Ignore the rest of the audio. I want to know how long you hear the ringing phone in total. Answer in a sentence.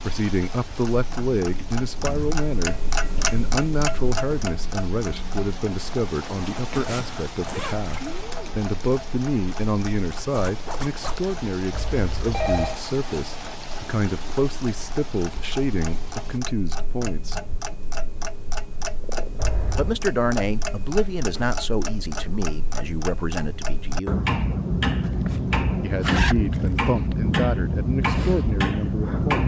You can hear the ringing phone for 2 seconds altogether.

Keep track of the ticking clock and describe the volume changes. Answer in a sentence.
The loudness of the ticking clock goes down, then up.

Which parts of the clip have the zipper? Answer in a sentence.
You can hear the zipper from 6.8 to 8.2 s, from 10.3 to 11.2 s and from 25.0 to 26.8 s.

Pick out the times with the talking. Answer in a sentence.
The talking can be heard from 0.0 to 17.4 s, from 19.8 to 24.2 s and from 25.8 to 29.4 s.